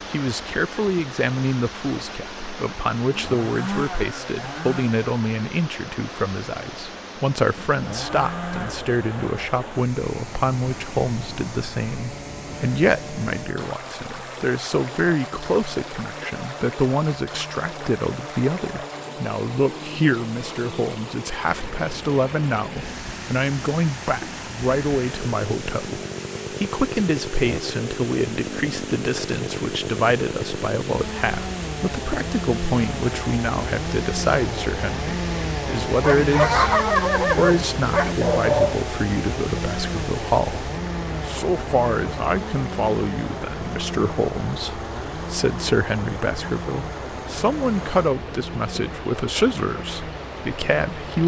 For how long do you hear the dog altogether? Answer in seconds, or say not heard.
3 s.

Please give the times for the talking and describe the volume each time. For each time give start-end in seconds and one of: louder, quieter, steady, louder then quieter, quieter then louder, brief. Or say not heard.
0.1-51.2 steady.